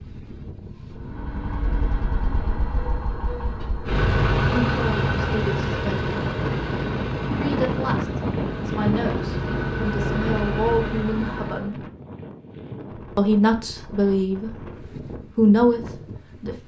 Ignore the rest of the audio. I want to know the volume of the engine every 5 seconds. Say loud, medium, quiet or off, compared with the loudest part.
loud, loud, loud, off.